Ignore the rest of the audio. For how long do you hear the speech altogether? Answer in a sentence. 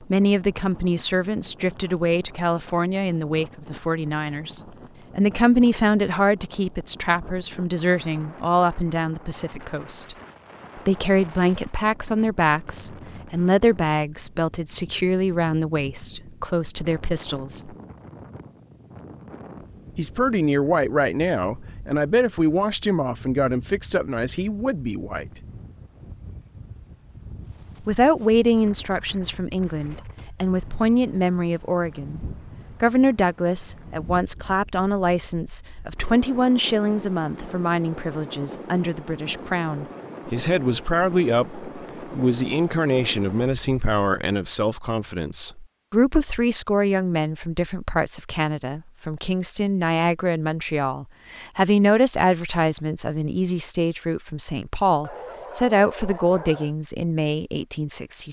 The speech can be heard for 53 seconds in total.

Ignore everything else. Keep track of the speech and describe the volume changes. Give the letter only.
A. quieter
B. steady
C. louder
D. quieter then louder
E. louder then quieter
B.